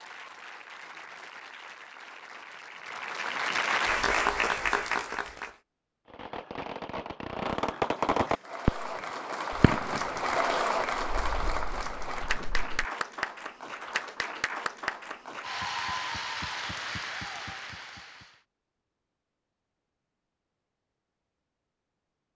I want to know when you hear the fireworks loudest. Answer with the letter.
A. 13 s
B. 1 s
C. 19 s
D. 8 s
D.